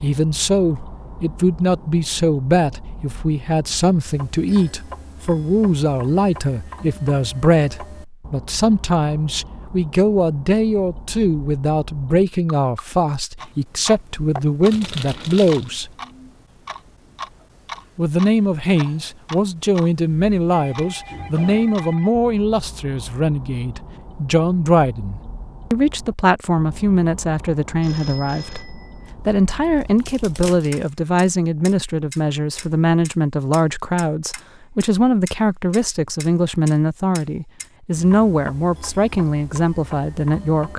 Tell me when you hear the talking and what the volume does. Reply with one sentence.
You can hear the talking from 0.0 to 15.9 s, at a steady volume; and from 17.9 to 40.7 s, at a steady volume.